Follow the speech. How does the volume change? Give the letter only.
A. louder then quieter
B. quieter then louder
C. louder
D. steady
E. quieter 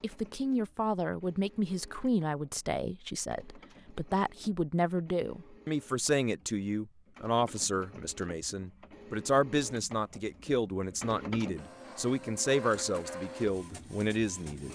D.